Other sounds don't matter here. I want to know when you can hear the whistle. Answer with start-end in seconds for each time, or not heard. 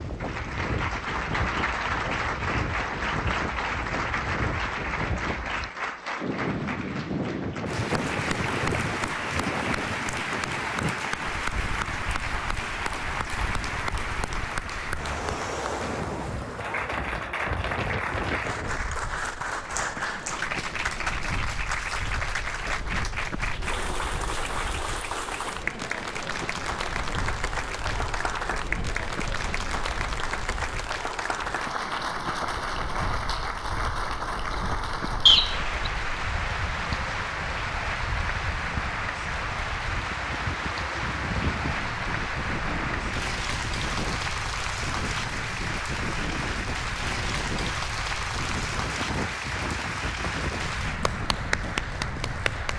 35.2-35.9.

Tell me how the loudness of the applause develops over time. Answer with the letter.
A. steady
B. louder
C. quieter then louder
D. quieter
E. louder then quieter
A.